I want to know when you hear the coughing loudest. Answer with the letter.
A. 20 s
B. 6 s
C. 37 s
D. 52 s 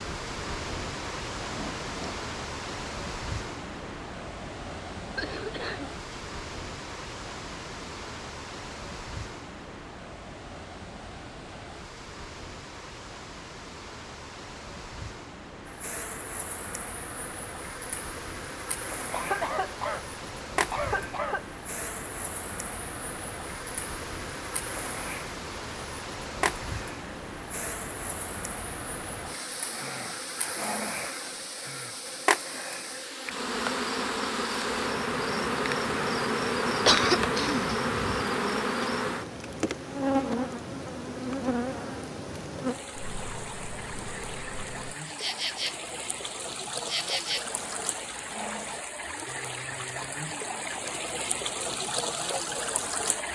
C.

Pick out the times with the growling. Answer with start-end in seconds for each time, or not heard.
1.5-2.1, 29.5-31.1, 47.3-48.9.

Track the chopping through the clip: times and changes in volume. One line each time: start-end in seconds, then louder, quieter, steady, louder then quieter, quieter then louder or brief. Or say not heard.
not heard.